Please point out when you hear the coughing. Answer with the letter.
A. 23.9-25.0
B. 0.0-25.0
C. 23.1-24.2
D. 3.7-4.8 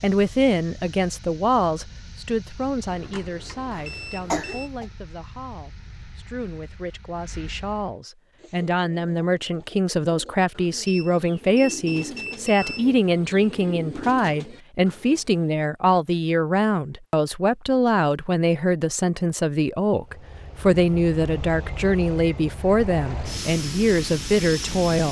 D.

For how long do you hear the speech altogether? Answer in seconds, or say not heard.
25 s.